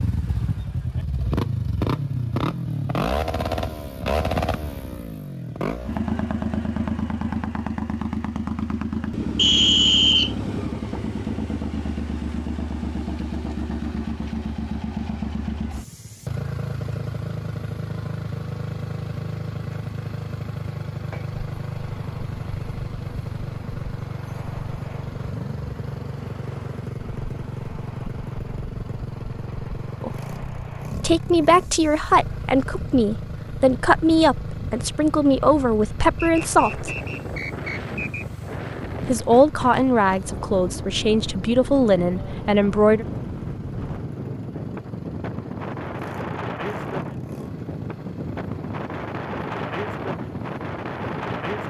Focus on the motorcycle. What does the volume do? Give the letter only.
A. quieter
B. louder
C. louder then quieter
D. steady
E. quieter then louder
A.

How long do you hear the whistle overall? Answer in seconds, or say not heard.
3 s.